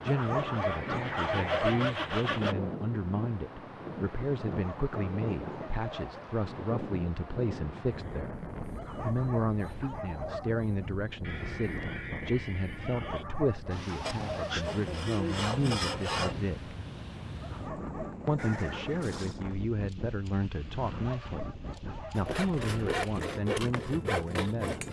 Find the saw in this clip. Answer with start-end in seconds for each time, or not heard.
0.0-2.5, 14.1-16.4, 22.1-24.8.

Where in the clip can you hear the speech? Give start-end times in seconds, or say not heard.
0.0-8.4, 9.0-16.8, 18.2-24.8.